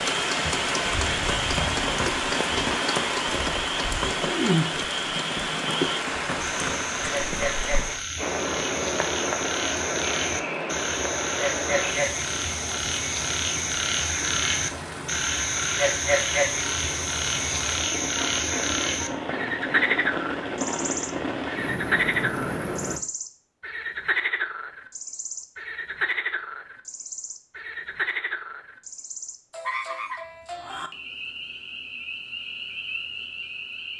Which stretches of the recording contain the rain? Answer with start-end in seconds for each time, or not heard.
0.0-23.0.